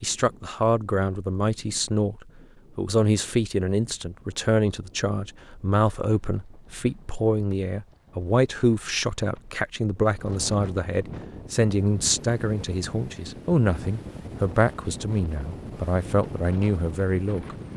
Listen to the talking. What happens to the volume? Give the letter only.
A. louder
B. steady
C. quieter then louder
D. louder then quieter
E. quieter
B.